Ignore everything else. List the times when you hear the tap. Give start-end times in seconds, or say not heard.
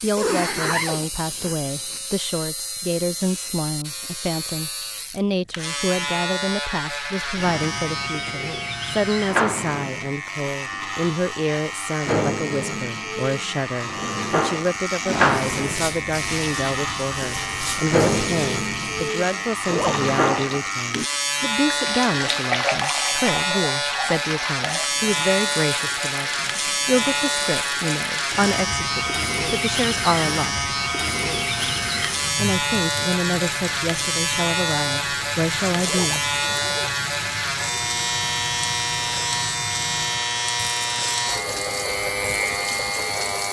14.9-43.4.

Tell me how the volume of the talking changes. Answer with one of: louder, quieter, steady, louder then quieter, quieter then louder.
steady.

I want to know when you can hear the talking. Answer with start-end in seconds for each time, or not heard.
0.0-30.6, 32.4-36.2.